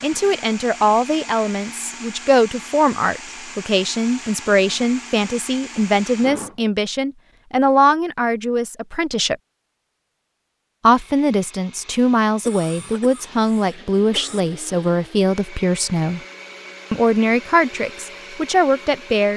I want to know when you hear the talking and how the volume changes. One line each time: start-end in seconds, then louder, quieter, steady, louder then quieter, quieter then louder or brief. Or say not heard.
0.0-9.3 steady
10.8-16.2 steady
16.9-19.3 brief.